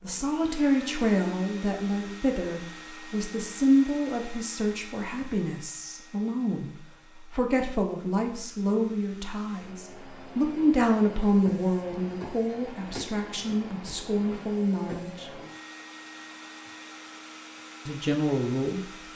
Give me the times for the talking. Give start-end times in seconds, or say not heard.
0.0-15.3, 17.9-18.9.